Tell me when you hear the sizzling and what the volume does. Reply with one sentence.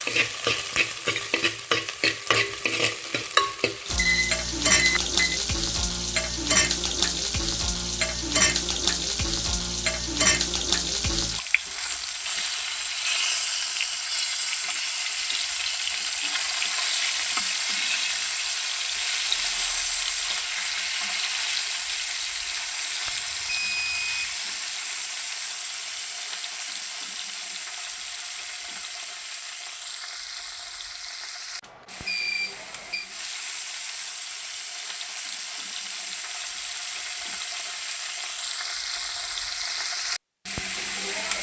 The sizzling can be heard from 0.0 to 41.3 s, getting quieter.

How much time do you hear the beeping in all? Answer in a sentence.
The beeping can be heard for 4 seconds in total.